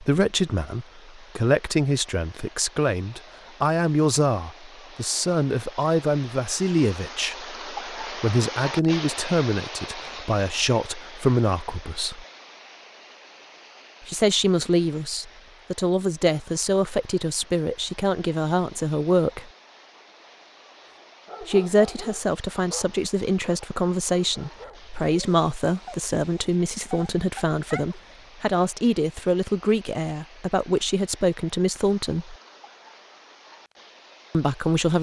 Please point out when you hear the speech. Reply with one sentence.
You can hear the speech from 0.0 to 12.2 s, from 14.1 to 19.5 s, from 21.4 to 32.4 s and from 34.3 to 34.9 s.